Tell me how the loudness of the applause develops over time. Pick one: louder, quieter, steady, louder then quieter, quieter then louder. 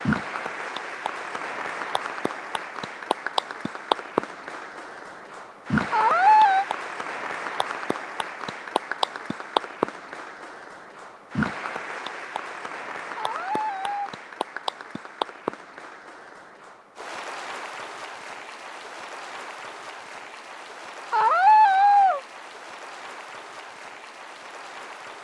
quieter.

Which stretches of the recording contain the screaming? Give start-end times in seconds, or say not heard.
5.9-6.7, 13.2-14.1, 21.1-22.2.